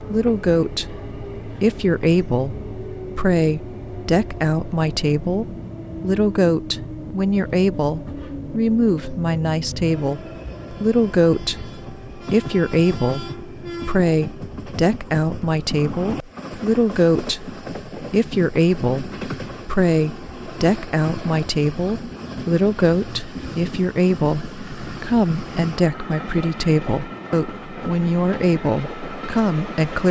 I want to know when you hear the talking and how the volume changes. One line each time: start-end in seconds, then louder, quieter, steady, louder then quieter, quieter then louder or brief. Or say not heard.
0.0-30.0 steady.